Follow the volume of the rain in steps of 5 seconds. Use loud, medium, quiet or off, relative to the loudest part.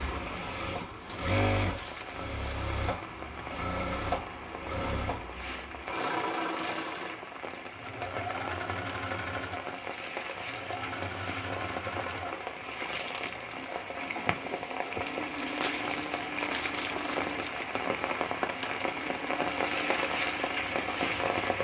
quiet, medium, medium, loud, loud.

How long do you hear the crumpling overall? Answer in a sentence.
The crumpling can be heard for 4 seconds in total.